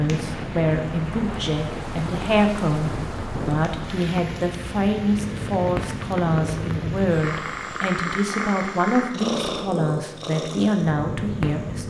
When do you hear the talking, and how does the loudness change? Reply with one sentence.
The talking can be heard from 0.0 to 11.8 s, at a steady volume.